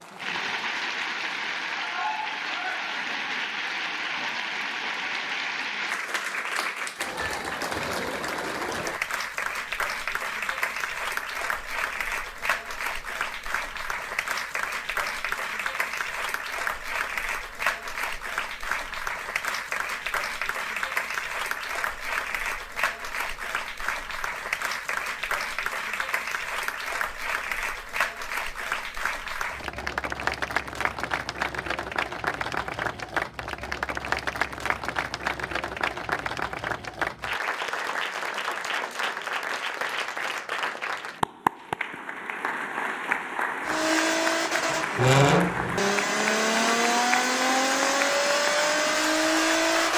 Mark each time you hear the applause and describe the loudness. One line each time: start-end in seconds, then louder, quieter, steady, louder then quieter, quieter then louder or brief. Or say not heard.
0.0-49.9 steady.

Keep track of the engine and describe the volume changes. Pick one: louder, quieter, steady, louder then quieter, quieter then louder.
steady.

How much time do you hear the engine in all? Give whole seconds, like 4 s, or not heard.
6 s.